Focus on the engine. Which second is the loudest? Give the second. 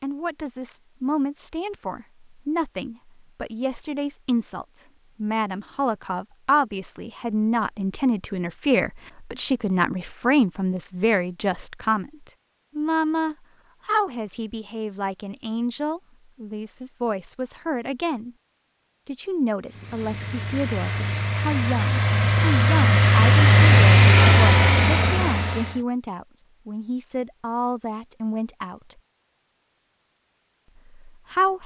24 s.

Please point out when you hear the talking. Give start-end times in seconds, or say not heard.
0.0-18.4, 19.1-29.0, 30.8-31.6.